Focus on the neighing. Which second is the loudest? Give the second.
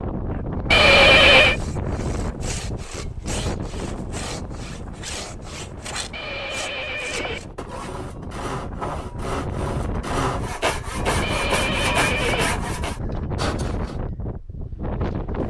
1 s.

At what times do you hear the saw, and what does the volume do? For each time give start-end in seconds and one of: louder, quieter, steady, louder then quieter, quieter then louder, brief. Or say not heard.
1.5-14.0 louder.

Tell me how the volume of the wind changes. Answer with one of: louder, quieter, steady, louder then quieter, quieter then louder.
quieter then louder.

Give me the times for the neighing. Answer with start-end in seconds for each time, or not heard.
0.7-1.6, 6.1-7.4, 11.2-12.5.